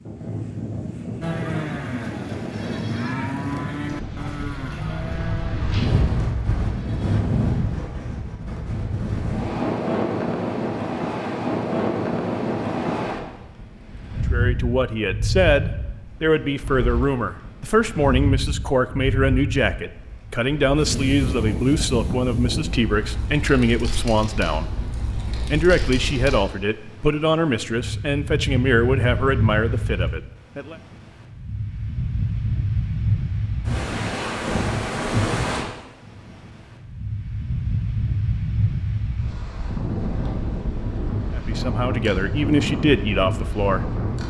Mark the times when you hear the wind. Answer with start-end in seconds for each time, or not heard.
0.0-44.2.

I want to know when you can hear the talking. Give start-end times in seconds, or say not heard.
14.3-24.7, 25.5-30.8, 41.4-44.2.